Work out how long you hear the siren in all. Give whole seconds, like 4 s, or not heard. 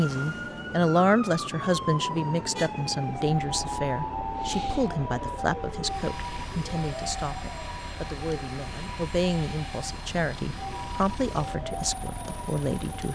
13 s.